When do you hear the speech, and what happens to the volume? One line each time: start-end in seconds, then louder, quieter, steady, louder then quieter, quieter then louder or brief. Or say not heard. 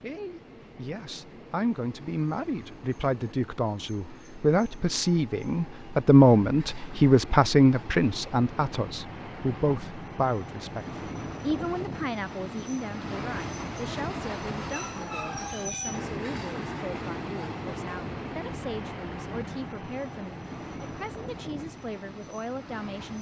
0.0-23.1 louder then quieter.